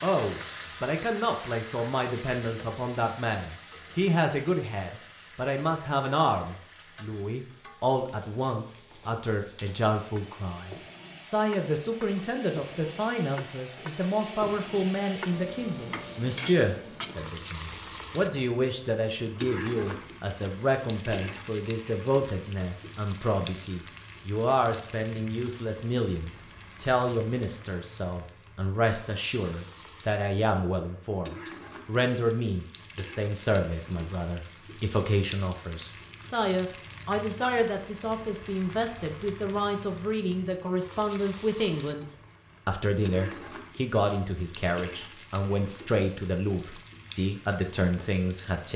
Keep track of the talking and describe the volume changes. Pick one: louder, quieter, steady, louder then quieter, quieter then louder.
steady.